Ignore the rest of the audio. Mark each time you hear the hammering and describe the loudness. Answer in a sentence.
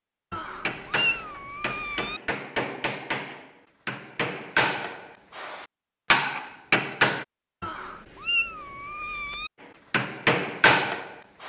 You can hear the hammering from 0.7 to 7.2 s, getting louder; and briefly from 9.9 to 11.4 s.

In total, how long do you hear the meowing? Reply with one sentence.
The meowing can be heard for 4 seconds in total.